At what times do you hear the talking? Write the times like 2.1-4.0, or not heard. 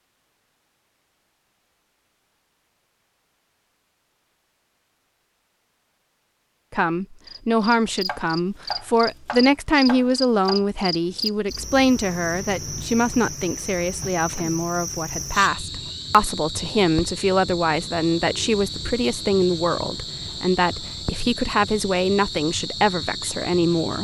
6.7-23.9.